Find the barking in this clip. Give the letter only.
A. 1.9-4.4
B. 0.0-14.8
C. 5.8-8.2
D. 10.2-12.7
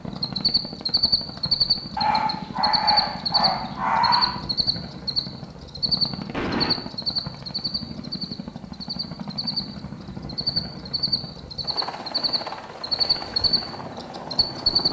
A.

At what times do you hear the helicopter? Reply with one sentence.
The helicopter can be heard from 0.0 to 14.8 s.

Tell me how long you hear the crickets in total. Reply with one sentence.
The crickets can be heard for 15 seconds in total.